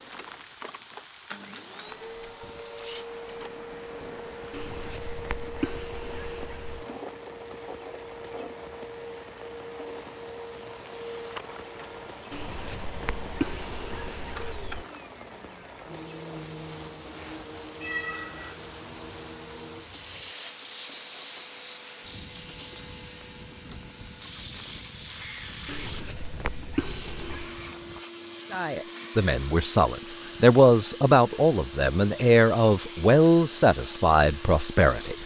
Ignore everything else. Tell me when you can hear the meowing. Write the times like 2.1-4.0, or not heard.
17.8-18.7.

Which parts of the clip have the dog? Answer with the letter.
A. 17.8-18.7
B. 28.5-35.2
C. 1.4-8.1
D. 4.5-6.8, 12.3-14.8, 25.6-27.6
D.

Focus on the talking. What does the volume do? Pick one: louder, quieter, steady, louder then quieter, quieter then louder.
louder then quieter.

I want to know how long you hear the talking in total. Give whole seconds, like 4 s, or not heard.
7 s.